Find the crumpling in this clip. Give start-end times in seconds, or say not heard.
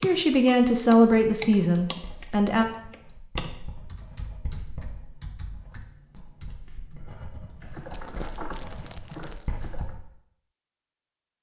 7.9-9.6.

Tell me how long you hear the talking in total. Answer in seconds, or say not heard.
3 s.